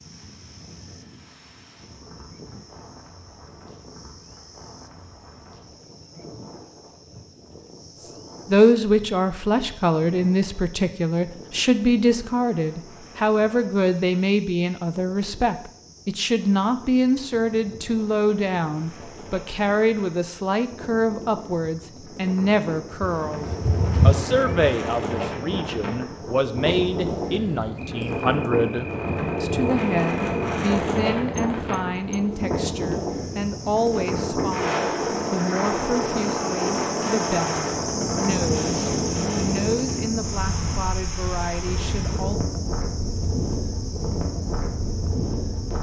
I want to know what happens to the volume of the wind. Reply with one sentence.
The volume of the wind goes up.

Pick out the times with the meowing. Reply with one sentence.
You can hear the meowing from 23.0 to 24.8 s.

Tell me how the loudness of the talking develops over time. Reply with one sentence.
The loudness of the talking goes down.